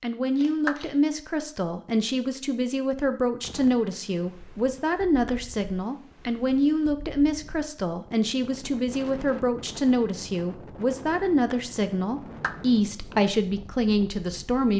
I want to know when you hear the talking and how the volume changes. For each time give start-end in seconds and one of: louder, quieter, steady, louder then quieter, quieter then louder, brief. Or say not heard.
0.0-14.7 steady.